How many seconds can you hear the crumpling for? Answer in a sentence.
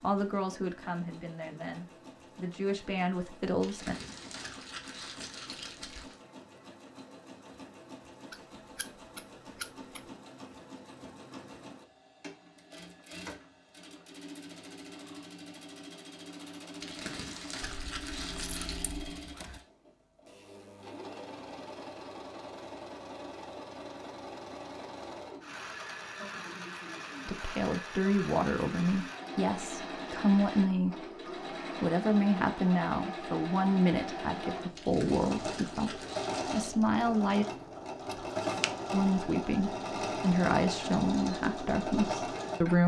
You can hear the crumpling for 7 seconds altogether.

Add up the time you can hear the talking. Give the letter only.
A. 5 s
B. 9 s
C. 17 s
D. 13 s
C.